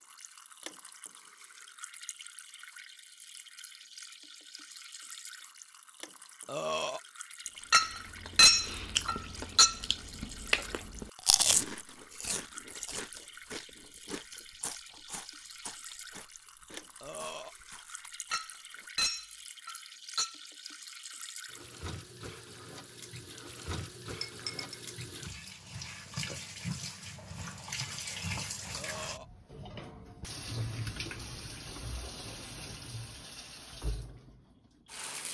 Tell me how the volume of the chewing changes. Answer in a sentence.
The loudness of the chewing goes up, then down.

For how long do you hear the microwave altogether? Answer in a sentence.
The microwave can't be heard in this clip.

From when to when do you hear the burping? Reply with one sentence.
You can hear the burping from 6.5 to 7.0 s, from 17.0 to 17.6 s and from 28.8 to 29.3 s.